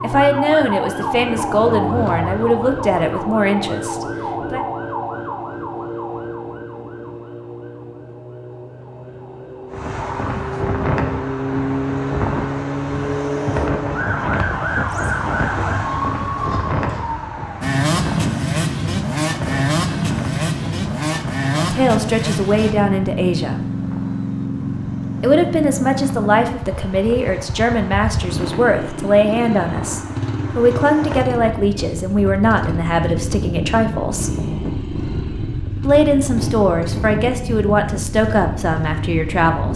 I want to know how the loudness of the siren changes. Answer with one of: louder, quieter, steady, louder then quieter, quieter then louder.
quieter then louder.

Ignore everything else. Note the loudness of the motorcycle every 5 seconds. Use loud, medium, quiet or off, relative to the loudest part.
medium, off, off, loud, loud, medium, medium, medium.